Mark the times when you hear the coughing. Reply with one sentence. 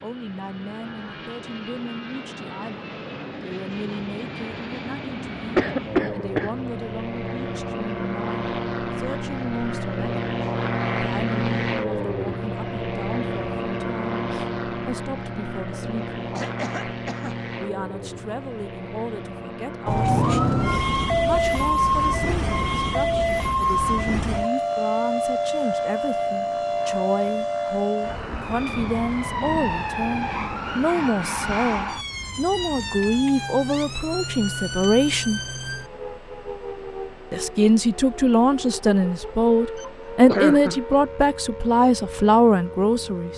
The coughing can be heard from 5.5 to 6.5 s, from 16.3 to 17.4 s and from 39.8 to 41.0 s.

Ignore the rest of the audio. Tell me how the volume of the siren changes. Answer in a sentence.
The volume of the siren goes down.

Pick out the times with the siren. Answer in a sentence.
You can hear the siren from 19.9 to 43.3 s.